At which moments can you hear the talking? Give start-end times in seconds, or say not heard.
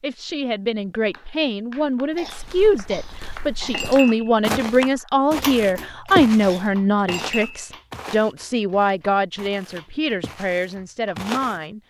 0.0-11.8.